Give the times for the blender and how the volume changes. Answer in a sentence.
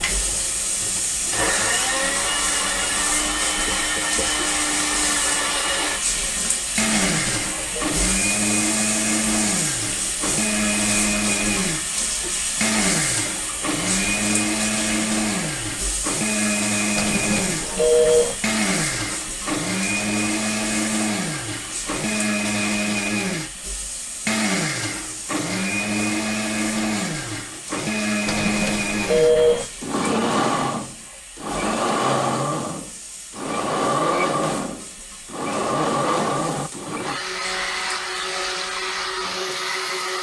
You can hear the blender from 0.0 to 40.1 s, at a steady volume.